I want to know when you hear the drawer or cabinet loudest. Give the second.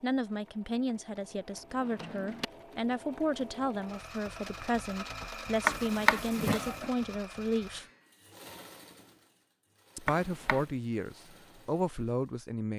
6 s.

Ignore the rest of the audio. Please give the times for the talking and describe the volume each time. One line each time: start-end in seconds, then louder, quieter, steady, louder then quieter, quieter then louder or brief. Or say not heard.
0.0-7.8 steady
9.9-12.7 brief.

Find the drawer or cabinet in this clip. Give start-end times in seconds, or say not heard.
1.8-2.5, 5.7-6.9, 10.1-10.7.